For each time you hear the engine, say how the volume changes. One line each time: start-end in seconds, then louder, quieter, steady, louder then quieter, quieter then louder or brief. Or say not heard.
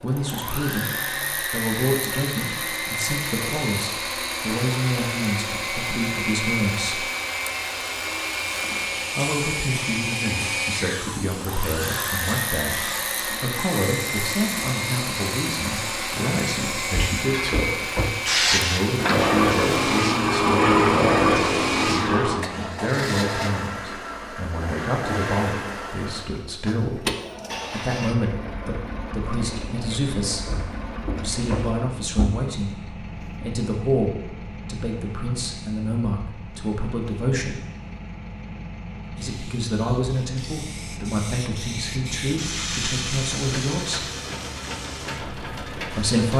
0.0-46.3 quieter.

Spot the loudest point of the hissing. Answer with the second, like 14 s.
21 s.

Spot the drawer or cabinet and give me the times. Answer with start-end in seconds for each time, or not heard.
16.9-18.1, 30.4-32.4.